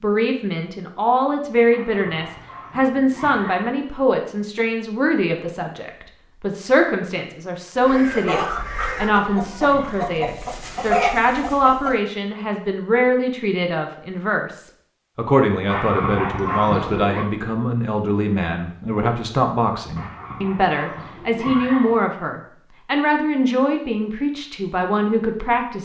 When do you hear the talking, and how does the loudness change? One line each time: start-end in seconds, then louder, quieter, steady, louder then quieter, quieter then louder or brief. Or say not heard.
0.0-25.7 steady.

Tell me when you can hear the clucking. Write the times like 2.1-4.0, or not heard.
7.8-11.9.